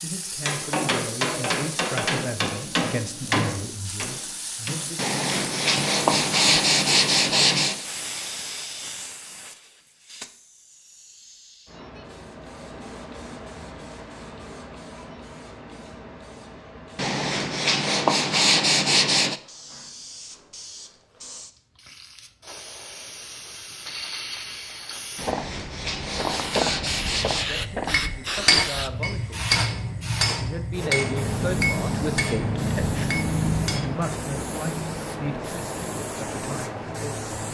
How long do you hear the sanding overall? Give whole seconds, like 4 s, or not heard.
8 s.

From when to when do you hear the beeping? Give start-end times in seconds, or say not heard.
not heard.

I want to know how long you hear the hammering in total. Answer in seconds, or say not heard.
12 s.